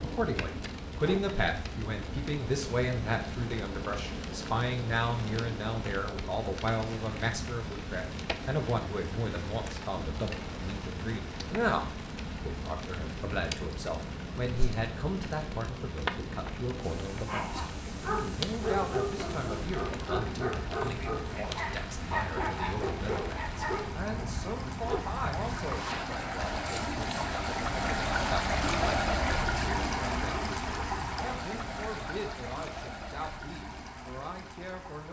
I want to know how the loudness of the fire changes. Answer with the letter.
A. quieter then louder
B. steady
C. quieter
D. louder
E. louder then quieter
B.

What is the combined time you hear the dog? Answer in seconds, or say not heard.
7 s.